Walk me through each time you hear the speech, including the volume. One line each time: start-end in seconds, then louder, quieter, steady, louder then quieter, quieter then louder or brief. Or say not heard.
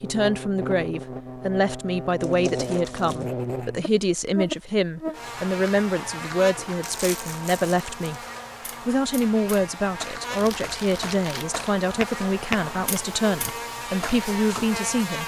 0.0-8.2 steady
8.8-15.2 steady.